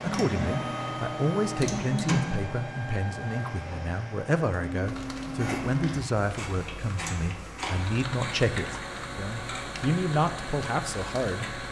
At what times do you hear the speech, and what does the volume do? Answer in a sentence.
You can hear the speech from 0.0 to 11.6 s, at a steady volume.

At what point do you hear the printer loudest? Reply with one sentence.
The loudest moment of the printer is at 2 seconds.